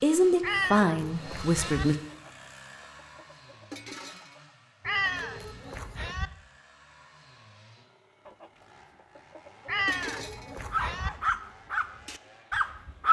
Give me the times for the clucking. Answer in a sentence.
The clucking can be heard from 2.0 to 4.5 s and from 8.2 to 10.7 s.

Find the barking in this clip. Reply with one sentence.
You can hear the barking from 10.7 to 13.0 s.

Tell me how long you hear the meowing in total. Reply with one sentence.
You can hear the meowing for 4 seconds altogether.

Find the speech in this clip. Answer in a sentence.
The speech can be heard from 0.0 to 1.9 s.